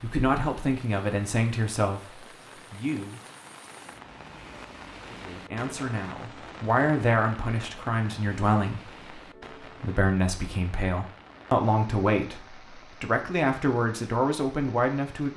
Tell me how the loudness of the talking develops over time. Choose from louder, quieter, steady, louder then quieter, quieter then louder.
steady.